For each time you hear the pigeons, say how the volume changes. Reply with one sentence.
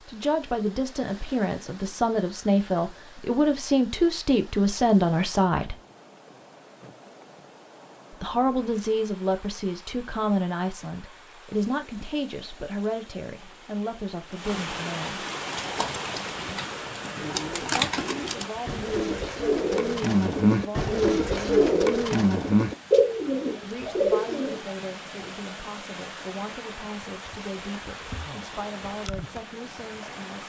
You can hear the pigeons from 15.3 to 24.8 s, getting louder.